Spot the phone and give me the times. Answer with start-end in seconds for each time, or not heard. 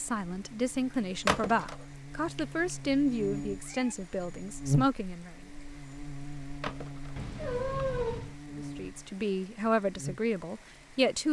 1.2-1.8, 6.6-7.2.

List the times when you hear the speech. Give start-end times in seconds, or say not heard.
0.0-5.3, 8.6-11.2.